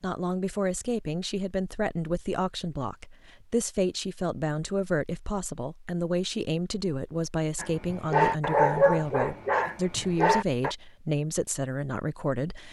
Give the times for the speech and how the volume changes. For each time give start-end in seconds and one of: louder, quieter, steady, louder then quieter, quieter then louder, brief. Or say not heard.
0.0-12.6 steady.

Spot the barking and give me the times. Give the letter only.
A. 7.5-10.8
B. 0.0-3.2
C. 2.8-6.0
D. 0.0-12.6
A.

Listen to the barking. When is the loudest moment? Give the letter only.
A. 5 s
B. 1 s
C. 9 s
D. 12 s
C.